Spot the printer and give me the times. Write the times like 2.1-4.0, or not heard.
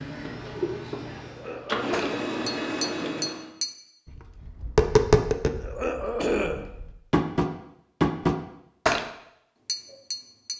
0.0-3.5.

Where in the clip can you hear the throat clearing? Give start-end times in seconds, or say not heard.
1.2-3.4, 5.5-6.7.